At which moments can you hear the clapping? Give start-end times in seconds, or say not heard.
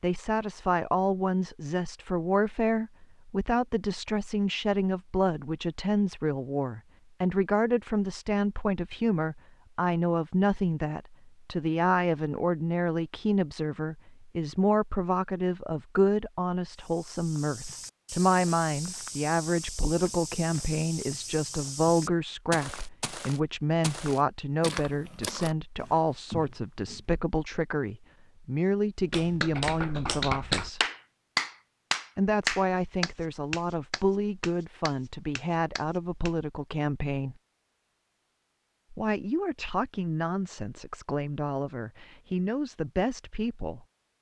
29.1-36.3.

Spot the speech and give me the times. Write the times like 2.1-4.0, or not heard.
0.0-30.8, 32.1-37.4, 38.9-43.9.